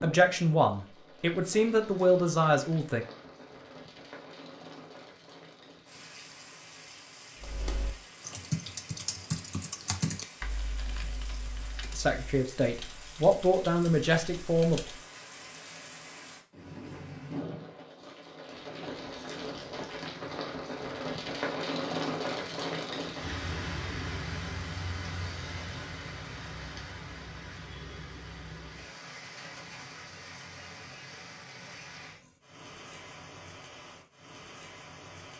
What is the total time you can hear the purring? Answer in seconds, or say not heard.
not heard.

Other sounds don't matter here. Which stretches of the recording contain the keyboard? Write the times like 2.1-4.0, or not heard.
7.4-15.0.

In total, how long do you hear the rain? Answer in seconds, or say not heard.
35 s.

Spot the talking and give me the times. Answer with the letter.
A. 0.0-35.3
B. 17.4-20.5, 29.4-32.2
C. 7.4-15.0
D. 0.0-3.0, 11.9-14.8
D.